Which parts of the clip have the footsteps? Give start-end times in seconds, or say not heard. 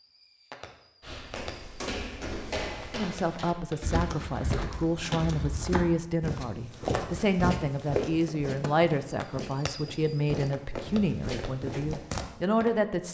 1.0-12.2.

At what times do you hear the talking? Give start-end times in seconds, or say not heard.
2.9-13.1.